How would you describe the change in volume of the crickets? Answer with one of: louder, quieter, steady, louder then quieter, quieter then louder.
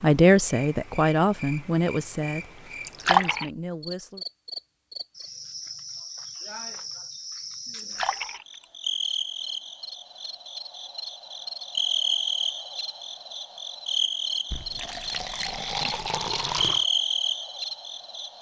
louder.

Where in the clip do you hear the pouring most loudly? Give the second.
3 s.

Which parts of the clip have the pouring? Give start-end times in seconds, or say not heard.
2.9-3.5, 7.8-8.7, 14.5-16.9.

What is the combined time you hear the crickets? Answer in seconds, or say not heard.
18 s.